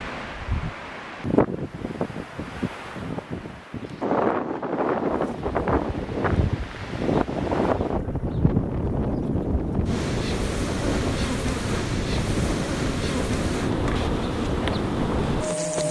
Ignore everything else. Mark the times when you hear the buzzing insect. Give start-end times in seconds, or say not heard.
5.1-15.8.